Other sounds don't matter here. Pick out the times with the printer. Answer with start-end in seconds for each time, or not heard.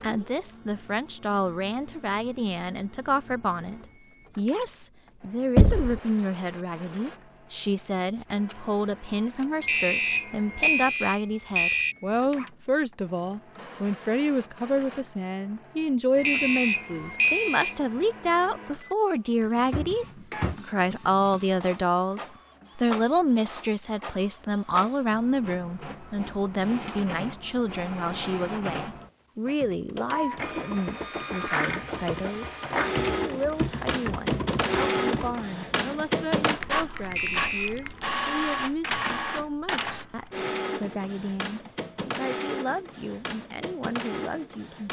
0.0-44.8.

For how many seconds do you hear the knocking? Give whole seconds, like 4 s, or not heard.
3 s.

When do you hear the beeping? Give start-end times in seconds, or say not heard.
9.6-11.9, 16.1-17.8, 37.1-37.9.